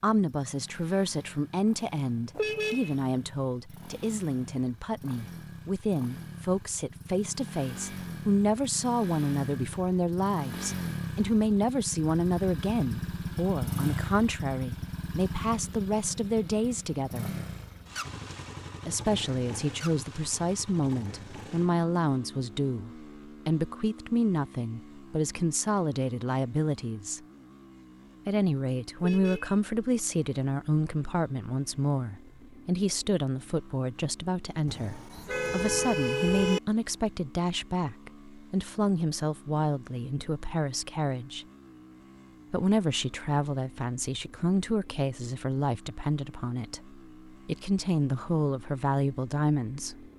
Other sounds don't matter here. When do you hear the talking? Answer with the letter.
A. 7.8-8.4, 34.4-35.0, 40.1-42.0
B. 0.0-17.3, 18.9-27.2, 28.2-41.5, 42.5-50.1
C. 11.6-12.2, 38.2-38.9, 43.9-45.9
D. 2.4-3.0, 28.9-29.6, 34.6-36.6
B.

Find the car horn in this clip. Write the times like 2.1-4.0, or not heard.
2.4-3.0, 28.9-29.6, 34.6-36.6.